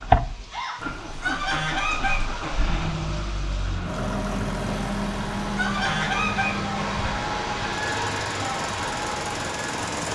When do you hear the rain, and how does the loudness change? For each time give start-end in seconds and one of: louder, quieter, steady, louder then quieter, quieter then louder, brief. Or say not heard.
0.0-10.1 louder.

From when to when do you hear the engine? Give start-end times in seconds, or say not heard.
0.0-10.1.